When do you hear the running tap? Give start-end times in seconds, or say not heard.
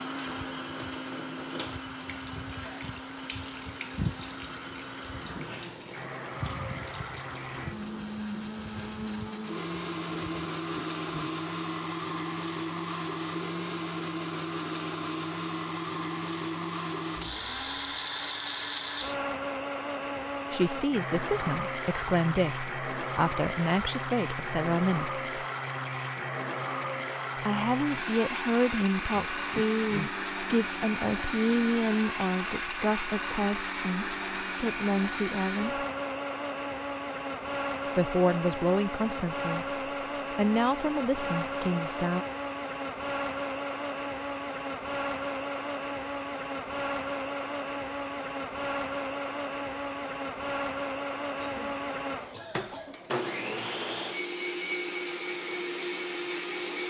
0.0-10.5.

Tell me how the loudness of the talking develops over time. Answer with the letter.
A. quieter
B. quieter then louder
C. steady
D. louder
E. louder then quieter
C.